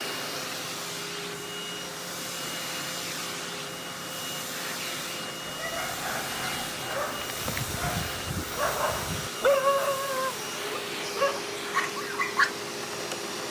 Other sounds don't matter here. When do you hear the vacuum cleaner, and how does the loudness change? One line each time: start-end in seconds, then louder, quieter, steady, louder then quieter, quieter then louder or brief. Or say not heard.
0.0-13.4 steady.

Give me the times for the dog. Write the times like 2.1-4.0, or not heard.
5.5-12.5.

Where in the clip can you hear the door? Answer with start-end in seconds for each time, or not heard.
not heard.